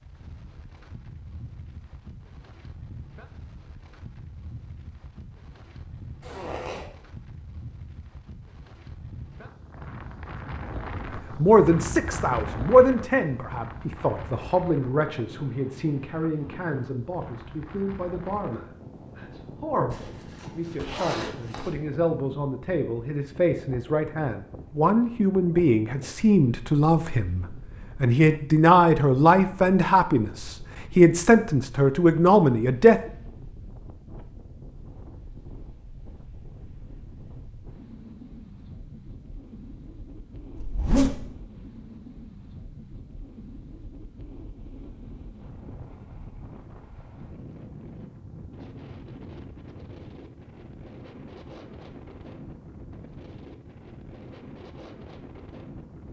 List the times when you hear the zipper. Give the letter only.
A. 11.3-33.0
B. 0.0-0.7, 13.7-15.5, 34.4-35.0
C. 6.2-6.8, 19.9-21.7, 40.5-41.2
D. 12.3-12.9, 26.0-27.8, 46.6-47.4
C.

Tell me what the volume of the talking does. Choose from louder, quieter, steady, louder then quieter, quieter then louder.
quieter then louder.